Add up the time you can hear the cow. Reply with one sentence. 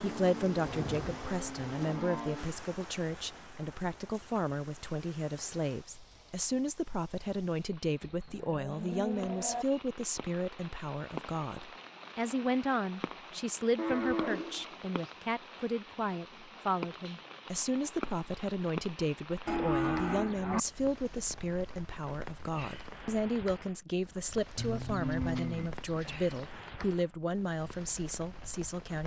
The cow can be heard for 8 seconds in total.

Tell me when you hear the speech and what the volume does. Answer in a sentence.
The speech can be heard from 0.0 to 29.0 s, at a steady volume.